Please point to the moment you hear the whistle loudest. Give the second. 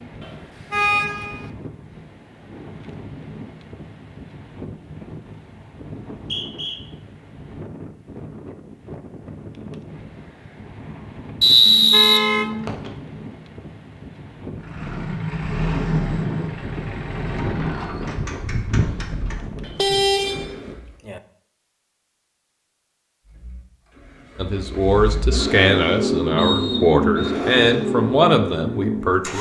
12 s.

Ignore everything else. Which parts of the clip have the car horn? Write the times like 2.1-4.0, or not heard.
0.2-1.4, 11.7-12.7, 19.6-21.2.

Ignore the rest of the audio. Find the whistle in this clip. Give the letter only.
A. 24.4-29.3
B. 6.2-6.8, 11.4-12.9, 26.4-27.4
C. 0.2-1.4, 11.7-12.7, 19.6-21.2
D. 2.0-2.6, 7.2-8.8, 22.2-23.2
B.